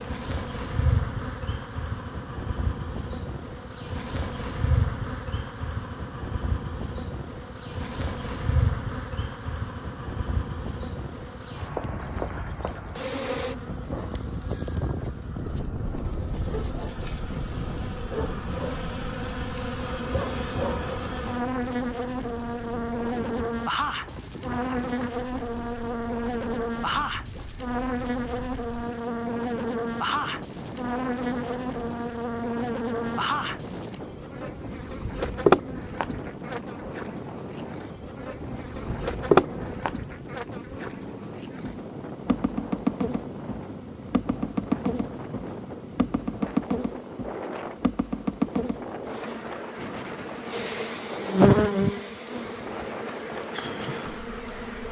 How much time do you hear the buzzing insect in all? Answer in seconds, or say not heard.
55 s.